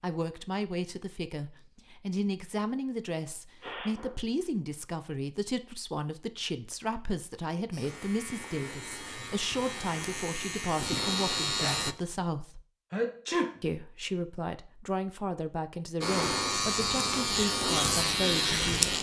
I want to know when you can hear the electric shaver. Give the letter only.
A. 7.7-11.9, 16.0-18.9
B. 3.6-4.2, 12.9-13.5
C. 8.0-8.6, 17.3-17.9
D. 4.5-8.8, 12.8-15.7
A.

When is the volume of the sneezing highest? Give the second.
13 s.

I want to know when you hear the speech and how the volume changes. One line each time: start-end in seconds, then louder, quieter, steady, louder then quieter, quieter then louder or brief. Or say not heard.
0.0-12.6 steady
13.6-18.9 steady.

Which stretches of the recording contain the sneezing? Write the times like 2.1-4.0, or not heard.
3.6-4.2, 12.9-13.5.